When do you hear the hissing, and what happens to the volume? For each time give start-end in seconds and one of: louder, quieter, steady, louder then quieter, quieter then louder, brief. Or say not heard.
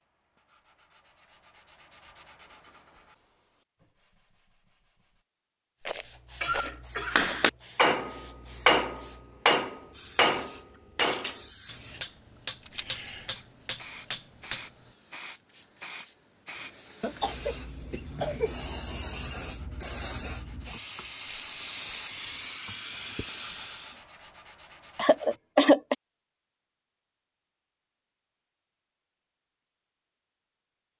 5.8-24.0 louder.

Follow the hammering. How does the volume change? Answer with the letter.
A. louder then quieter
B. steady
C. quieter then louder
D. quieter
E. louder
D.